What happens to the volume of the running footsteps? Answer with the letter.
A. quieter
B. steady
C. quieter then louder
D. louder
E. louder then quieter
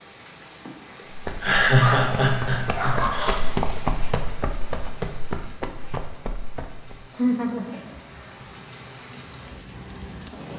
E.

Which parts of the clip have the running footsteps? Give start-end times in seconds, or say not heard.
1.1-7.0.